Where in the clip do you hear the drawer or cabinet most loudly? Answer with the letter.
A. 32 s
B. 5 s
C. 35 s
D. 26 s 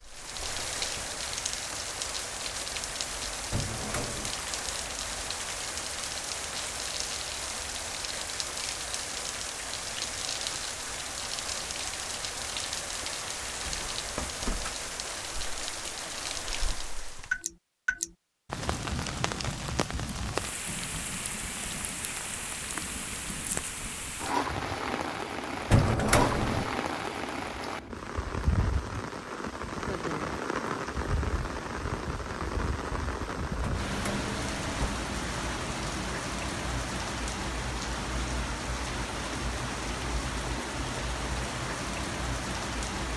D.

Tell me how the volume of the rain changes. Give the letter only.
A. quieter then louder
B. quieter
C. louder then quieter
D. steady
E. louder
D.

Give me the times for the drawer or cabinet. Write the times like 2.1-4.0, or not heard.
3.5-4.3, 25.6-26.7, 33.6-35.0.